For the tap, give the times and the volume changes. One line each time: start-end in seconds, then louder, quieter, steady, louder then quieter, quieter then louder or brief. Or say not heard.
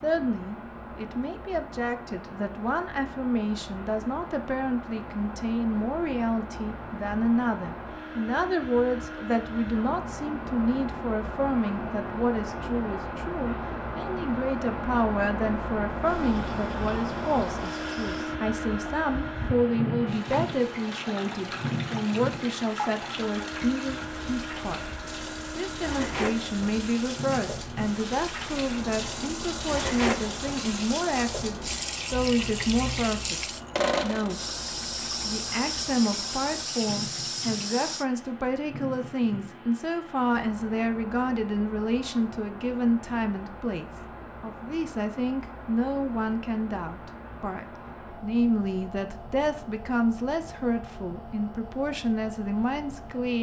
16.0-38.0 louder.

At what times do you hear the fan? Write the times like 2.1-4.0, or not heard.
0.0-53.3.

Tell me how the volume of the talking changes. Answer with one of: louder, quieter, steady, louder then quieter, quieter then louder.
steady.